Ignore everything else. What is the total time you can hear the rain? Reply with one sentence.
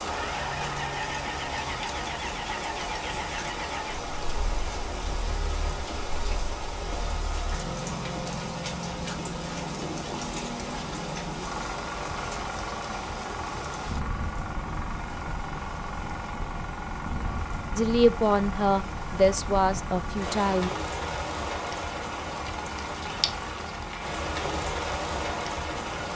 You can hear the rain for 26 seconds altogether.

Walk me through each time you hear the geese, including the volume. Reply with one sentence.
You can't hear the geese here.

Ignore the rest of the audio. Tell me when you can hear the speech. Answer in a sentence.
The speech can be heard from 17.8 to 20.7 s.